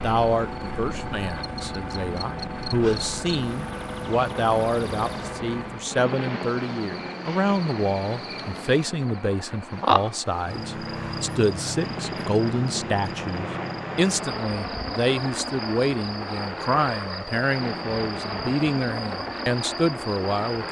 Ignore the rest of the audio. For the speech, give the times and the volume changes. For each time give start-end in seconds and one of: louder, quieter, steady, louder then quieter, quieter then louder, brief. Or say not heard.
0.0-20.6 steady.